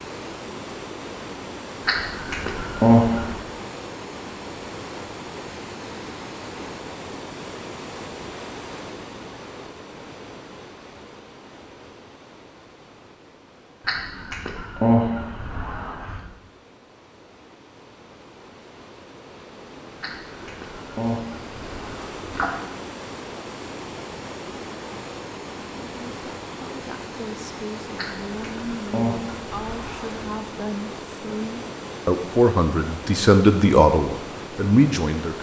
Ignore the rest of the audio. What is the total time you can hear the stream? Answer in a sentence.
You can hear the stream for 35 seconds altogether.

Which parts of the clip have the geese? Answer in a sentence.
The geese can be heard from 1.9 to 3.4 s, from 13.8 to 16.2 s, from 20.0 to 22.6 s and from 27.9 to 30.1 s.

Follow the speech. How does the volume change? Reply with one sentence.
The loudness of the speech goes up.